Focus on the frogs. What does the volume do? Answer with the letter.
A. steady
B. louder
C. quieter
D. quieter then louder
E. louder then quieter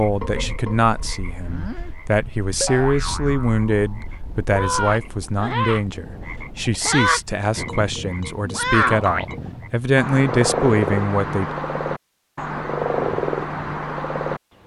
B.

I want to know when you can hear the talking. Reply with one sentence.
You can hear the talking from 0.0 to 11.5 s.